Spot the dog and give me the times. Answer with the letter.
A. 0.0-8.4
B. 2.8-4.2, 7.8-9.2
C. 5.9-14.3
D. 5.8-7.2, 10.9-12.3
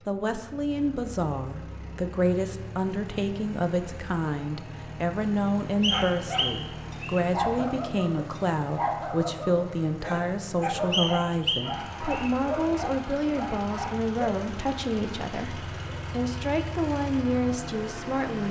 C.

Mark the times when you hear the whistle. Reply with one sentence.
The whistle can be heard from 5.8 to 7.2 s and from 10.9 to 12.3 s.